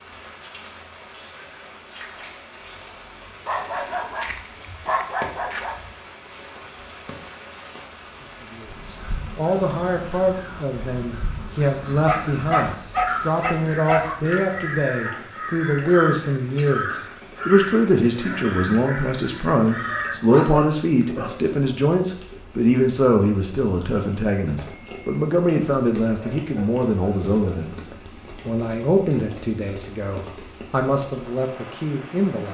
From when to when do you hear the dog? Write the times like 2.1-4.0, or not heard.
3.5-5.8, 12.1-14.2, 20.0-21.8, 26.2-27.7.